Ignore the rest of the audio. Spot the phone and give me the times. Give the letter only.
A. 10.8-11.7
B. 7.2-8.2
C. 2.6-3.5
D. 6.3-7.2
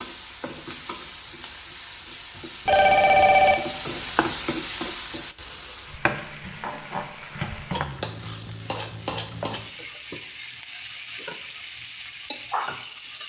C.